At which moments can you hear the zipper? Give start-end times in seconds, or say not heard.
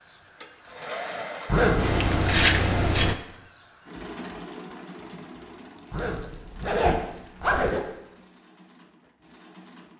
1.4-2.0, 5.9-7.8.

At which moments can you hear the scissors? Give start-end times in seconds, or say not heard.
1.8-3.1, 5.8-7.8.